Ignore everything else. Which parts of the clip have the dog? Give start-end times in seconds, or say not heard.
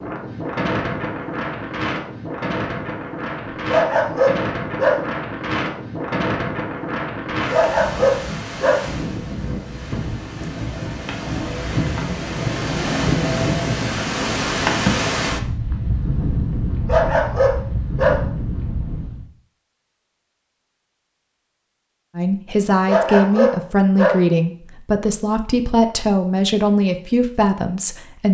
3.7-5.0, 7.5-8.8, 16.6-18.2, 22.9-24.2.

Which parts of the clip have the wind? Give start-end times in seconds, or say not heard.
0.0-19.2.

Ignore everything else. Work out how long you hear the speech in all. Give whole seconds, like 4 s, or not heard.
6 s.